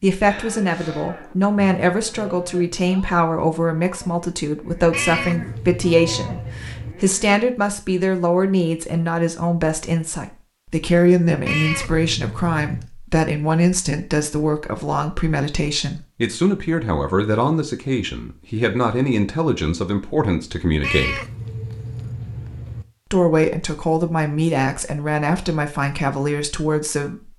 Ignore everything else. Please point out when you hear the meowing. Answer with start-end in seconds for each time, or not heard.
4.9-7.0, 11.4-12.9, 20.8-22.9.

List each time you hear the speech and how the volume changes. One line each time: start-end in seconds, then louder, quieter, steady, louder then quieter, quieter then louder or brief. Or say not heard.
0.0-21.2 steady
23.1-27.3 steady.